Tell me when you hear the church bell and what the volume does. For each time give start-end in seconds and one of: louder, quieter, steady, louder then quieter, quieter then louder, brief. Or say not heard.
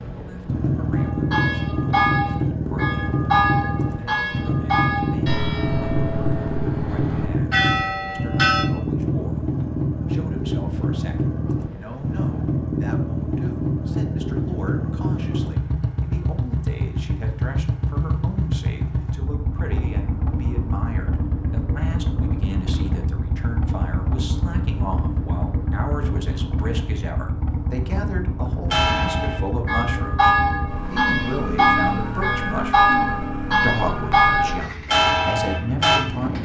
0.9-8.7 quieter then louder
28.7-36.0 steady.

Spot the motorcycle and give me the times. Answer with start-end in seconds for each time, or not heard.
0.0-36.4.